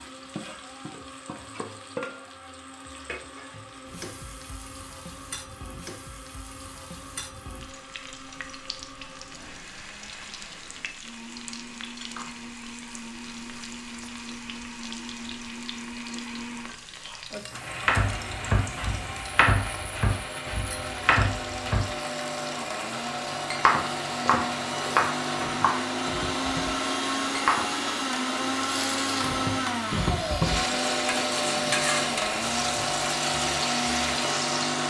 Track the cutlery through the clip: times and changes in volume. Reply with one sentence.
The cutlery can't be heard in this clip.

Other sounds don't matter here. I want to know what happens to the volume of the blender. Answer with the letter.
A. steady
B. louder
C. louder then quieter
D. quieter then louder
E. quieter
B.